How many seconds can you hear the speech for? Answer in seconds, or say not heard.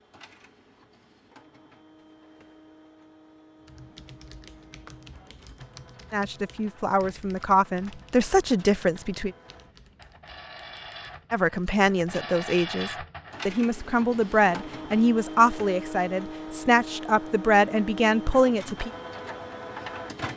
11 s.